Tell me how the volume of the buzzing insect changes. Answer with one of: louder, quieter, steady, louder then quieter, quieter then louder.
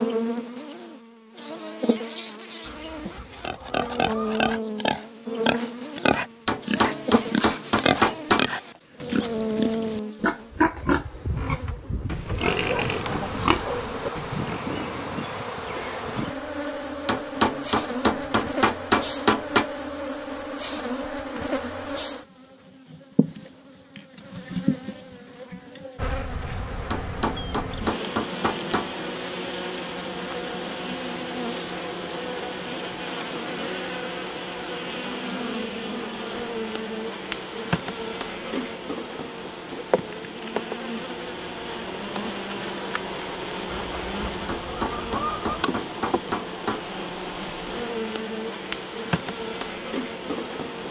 steady.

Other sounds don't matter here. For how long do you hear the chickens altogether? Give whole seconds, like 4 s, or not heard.
4 s.